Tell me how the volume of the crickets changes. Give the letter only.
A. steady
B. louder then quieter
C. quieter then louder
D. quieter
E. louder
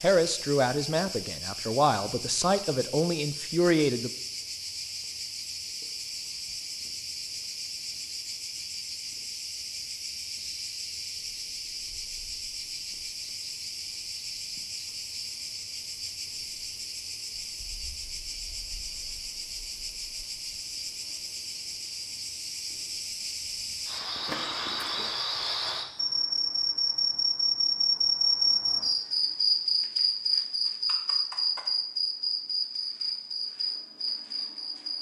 E.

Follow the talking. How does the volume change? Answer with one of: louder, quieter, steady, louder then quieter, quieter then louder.
quieter then louder.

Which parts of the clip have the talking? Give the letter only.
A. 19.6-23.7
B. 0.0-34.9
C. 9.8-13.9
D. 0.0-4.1
D.